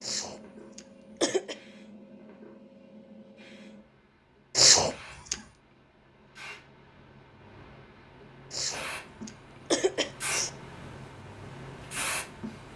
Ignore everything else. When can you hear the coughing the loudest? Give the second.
5 s.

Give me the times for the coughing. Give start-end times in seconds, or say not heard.
0.0-1.6, 4.5-5.3, 8.5-10.5.